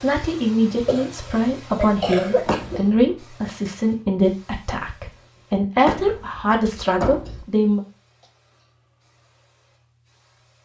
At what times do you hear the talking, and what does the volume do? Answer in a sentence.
You can hear the talking from 0.0 to 7.8 s, at a steady volume.